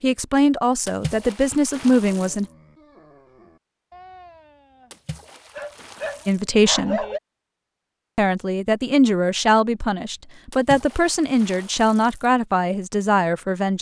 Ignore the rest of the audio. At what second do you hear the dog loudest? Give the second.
7 s.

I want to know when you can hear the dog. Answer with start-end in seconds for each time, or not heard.
2.0-7.2.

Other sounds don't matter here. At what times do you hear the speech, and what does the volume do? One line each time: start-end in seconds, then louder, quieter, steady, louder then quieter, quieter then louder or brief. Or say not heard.
0.0-2.5 brief
6.2-7.0 brief
8.2-13.7 steady.